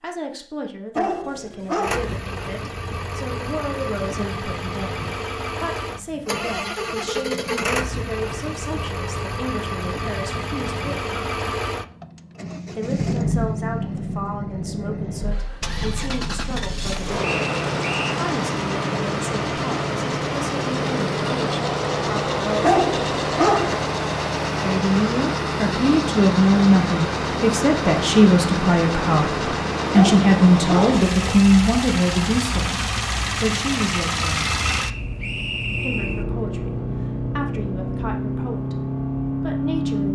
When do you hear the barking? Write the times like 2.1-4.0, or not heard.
0.9-2.2, 22.6-23.9, 29.9-31.0.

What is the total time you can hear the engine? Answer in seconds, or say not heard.
38 s.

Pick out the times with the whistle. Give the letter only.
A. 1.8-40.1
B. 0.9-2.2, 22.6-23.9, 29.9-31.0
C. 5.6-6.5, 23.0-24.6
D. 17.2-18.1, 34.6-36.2
D.